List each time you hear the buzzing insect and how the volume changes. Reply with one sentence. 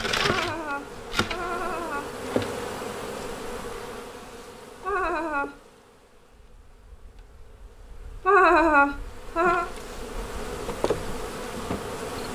You can hear the buzzing insect from 0.0 to 12.3 s, getting quieter then louder.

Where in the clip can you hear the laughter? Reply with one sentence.
The laughter can be heard from 0.1 to 2.1 s, from 4.8 to 5.5 s and from 8.2 to 9.7 s.